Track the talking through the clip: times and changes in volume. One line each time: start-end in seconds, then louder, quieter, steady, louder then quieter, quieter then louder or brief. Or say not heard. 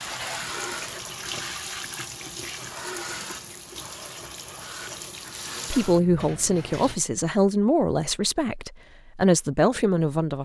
5.7-10.4 quieter then louder.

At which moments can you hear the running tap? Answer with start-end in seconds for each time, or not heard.
0.0-7.0.